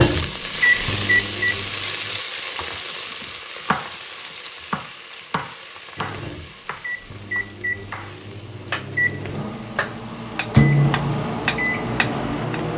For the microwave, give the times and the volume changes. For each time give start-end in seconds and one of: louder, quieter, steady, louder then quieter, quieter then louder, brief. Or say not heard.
0.0-2.2 brief
6.0-12.7 louder then quieter.